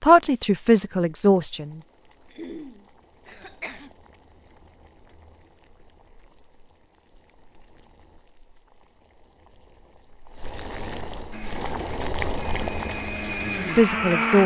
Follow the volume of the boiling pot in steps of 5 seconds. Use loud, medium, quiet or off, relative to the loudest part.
quiet, quiet, loud.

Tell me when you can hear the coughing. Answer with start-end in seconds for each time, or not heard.
2.3-4.0.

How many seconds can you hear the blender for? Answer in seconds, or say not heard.
3 s.